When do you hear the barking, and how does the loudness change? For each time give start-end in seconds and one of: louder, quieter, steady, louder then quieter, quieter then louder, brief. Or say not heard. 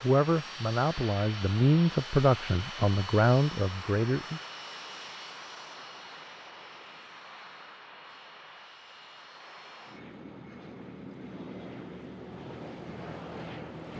not heard.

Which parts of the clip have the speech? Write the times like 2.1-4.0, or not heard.
0.0-4.4.